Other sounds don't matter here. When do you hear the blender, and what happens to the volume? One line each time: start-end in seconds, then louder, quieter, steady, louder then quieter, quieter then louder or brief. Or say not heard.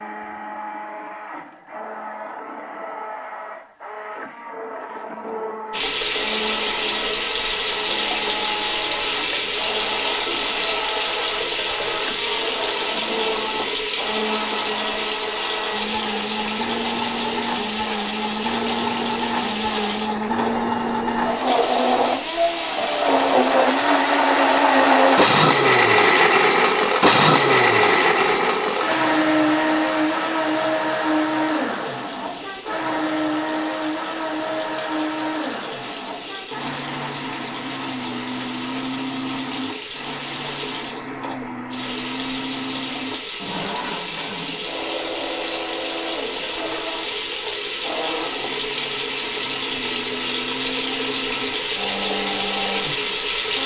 0.0-53.6 louder then quieter.